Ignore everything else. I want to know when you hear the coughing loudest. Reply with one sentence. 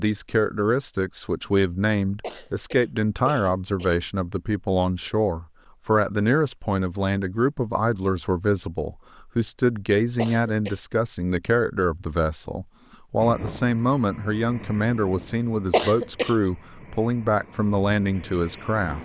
The volume of the coughing peaks at 16 seconds.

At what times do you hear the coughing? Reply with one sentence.
You can hear the coughing from 2.2 to 4.0 s, from 10.2 to 10.8 s and from 15.7 to 16.4 s.